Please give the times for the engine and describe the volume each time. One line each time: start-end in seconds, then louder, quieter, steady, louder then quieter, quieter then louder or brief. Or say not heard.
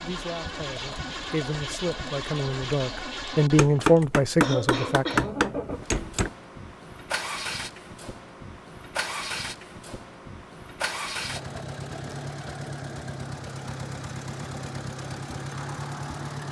0.0-16.4 steady.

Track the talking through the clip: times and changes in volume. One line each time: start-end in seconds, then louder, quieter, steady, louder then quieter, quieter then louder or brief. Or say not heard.
0.0-5.0 louder.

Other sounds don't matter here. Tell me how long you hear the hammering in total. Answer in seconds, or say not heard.
3 s.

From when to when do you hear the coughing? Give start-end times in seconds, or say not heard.
4.0-5.3.